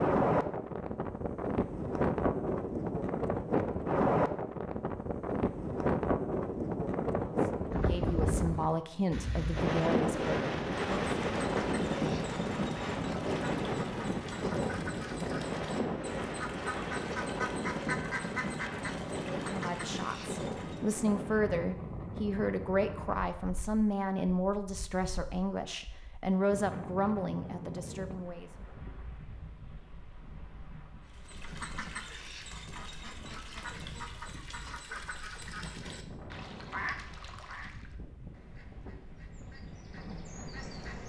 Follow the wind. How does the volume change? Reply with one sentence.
The loudness of the wind goes down.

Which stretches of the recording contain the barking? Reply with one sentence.
The barking can't be heard in this clip.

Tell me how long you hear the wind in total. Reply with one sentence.
You can hear the wind for 41 seconds altogether.